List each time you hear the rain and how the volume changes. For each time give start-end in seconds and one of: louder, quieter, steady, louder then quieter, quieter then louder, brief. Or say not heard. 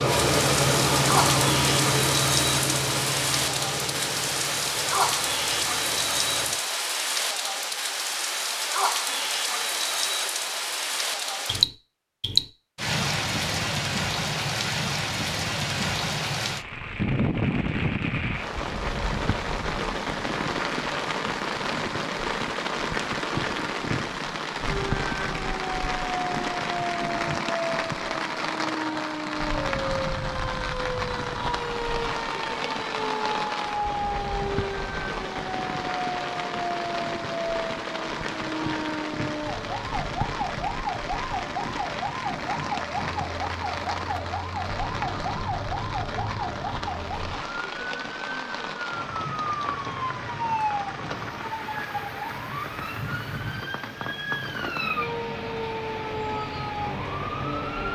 0.0-57.9 quieter.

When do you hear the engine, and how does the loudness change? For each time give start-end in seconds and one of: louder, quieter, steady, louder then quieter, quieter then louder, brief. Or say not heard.
0.0-6.5 quieter.